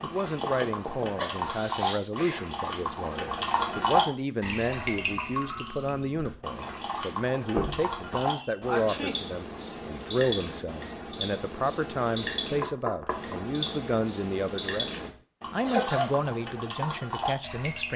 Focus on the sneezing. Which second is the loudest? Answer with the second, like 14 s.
16 s.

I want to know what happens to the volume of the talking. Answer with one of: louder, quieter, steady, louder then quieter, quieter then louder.
steady.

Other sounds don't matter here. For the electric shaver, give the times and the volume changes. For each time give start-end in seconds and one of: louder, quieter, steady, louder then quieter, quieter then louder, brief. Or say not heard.
not heard.